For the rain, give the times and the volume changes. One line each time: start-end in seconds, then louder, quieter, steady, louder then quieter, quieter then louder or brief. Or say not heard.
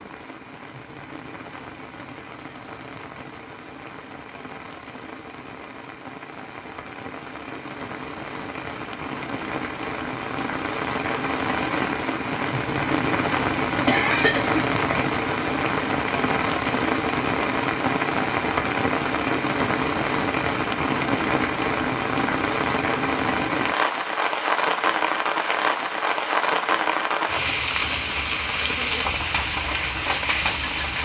0.0-31.0 louder.